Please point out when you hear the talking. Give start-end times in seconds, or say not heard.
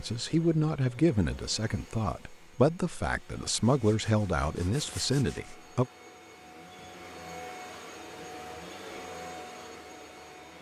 0.0-5.8.